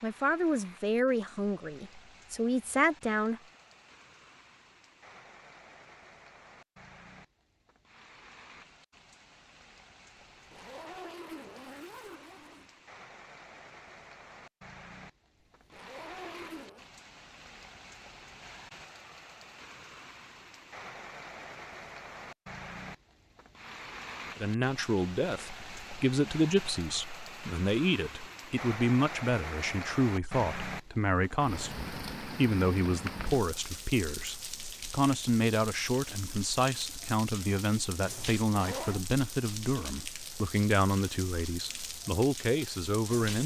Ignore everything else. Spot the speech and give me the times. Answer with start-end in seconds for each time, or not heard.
0.0-3.4, 24.4-43.4.